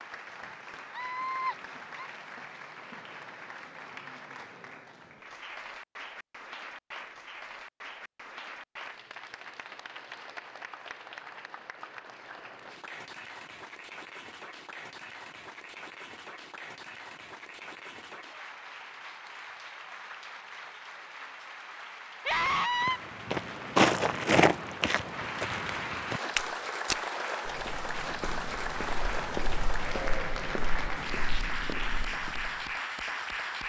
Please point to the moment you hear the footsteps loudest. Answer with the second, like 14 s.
24 s.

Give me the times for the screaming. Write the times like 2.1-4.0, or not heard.
0.9-2.1, 22.2-23.0.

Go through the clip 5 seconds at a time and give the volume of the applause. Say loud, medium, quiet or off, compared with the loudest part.
medium, medium, medium, medium, medium, loud, loud.